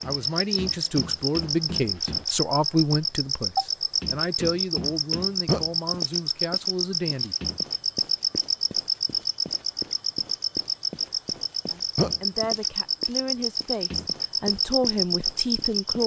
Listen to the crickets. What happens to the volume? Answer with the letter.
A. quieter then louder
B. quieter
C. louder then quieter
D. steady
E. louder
D.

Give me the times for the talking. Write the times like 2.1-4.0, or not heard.
0.1-7.3, 11.7-16.0.